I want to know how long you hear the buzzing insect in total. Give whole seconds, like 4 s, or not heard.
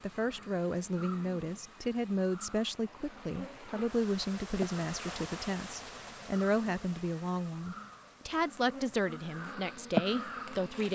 11 s.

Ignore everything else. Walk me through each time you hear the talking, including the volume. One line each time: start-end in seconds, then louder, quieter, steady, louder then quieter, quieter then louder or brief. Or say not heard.
0.0-10.9 steady.